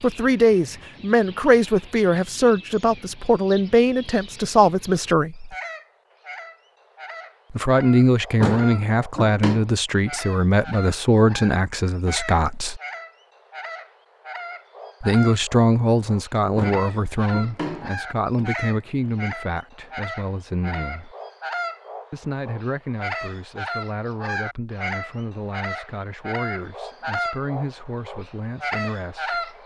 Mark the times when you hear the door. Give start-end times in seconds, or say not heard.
8.4-9.7, 16.6-18.5.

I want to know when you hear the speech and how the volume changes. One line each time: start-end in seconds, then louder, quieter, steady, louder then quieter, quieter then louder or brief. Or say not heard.
0.0-5.5 steady
7.5-12.8 quieter
15.0-21.1 quieter
22.1-29.4 steady.